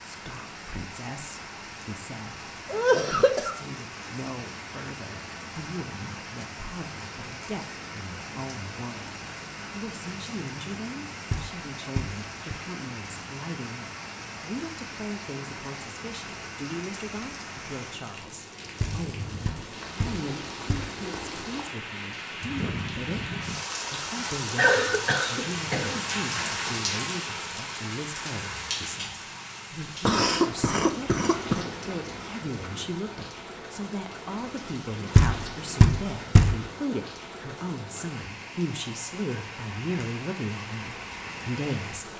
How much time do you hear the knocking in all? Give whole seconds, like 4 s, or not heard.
5 s.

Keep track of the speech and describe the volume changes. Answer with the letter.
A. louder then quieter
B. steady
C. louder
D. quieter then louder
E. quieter
C.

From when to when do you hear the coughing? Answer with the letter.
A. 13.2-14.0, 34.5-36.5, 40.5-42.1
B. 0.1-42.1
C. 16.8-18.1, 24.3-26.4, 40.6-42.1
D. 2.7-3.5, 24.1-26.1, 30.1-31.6
D.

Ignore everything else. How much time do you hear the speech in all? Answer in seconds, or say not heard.
42 s.